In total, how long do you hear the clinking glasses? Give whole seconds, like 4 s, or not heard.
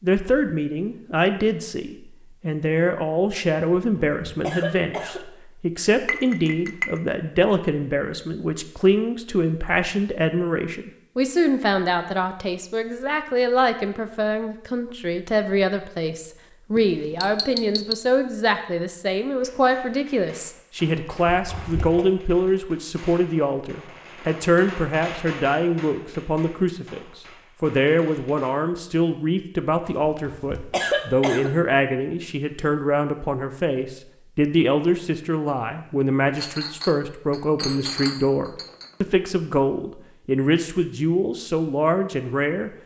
5 s.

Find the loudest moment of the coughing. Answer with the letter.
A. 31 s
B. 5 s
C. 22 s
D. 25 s
A.